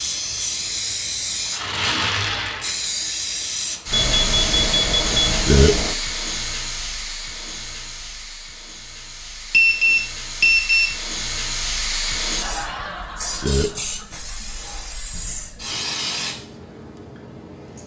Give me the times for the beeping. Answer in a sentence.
The beeping can be heard from 3.9 to 6.0 s and from 9.5 to 10.9 s.